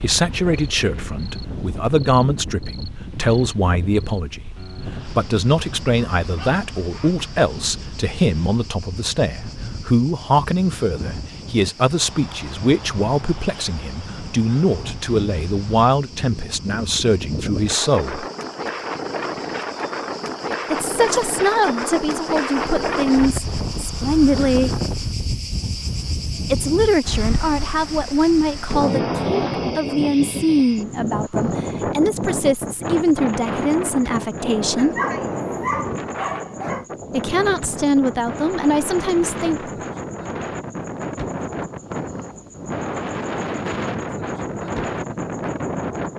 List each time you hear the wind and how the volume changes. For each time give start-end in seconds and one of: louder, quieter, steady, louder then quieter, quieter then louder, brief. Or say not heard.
0.0-46.1 louder.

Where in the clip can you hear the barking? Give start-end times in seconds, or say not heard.
6.2-7.5, 34.8-36.9.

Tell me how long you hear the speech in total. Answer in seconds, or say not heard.
33 s.